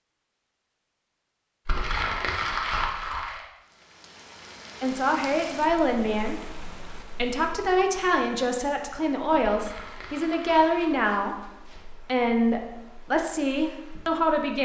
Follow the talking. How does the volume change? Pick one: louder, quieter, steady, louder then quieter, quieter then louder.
steady.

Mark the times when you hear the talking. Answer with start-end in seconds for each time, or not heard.
4.8-14.6.